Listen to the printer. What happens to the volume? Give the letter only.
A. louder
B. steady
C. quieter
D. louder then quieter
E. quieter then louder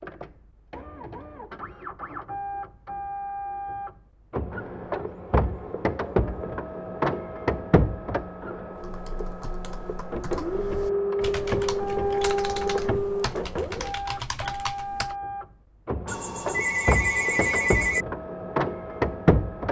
A.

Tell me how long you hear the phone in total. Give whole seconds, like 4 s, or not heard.
2 s.